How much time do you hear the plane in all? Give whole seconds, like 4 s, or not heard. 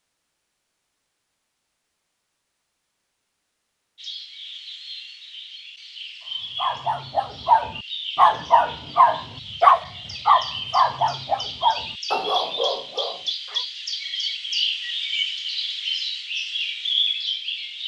not heard.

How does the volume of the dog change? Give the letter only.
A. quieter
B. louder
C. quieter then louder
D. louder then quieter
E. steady
A.